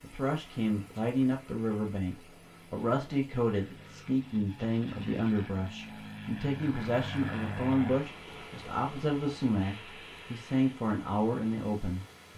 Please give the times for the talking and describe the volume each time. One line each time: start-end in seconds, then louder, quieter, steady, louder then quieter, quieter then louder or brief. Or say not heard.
0.0-12.3 steady.